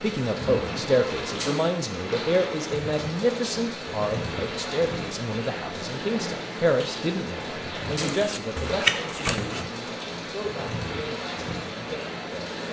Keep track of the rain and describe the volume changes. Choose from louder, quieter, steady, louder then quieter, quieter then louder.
steady.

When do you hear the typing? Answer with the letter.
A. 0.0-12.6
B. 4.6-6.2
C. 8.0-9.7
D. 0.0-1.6
C.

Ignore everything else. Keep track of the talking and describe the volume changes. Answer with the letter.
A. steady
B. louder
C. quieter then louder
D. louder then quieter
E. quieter
E.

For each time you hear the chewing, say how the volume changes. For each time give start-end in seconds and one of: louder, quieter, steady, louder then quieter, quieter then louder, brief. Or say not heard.
not heard.